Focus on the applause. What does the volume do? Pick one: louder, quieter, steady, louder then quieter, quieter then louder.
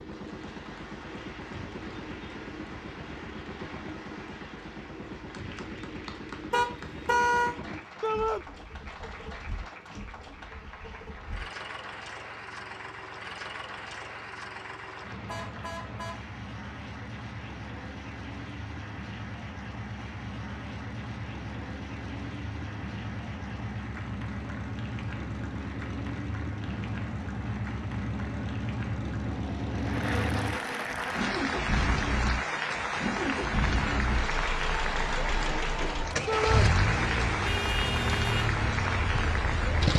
louder.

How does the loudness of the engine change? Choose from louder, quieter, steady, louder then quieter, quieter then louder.
louder.